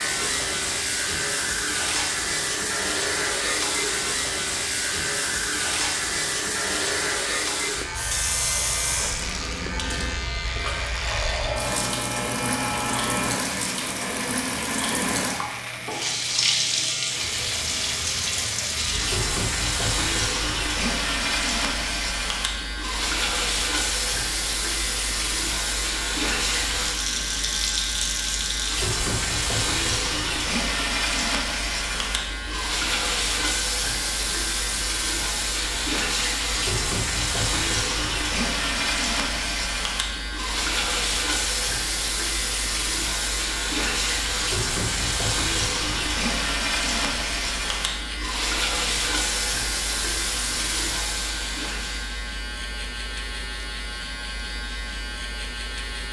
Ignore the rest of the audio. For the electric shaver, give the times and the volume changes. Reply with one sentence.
The electric shaver can be heard from 0.0 to 56.0 s, at a steady volume.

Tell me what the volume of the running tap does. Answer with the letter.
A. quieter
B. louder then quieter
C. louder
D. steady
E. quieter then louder
D.